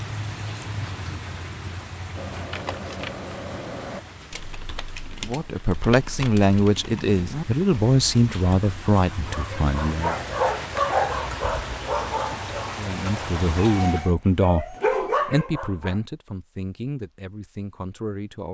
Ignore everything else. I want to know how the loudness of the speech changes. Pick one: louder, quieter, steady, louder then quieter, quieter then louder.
quieter.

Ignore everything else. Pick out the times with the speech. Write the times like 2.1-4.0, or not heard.
5.2-10.2, 12.8-18.4.